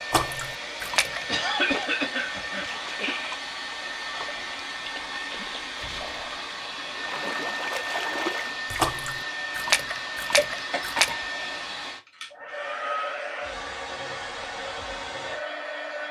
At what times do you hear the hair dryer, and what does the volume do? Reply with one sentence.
The hair dryer can be heard from 0.0 to 16.0 s, at a steady volume.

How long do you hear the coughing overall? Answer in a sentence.
The coughing can be heard for 3 seconds in total.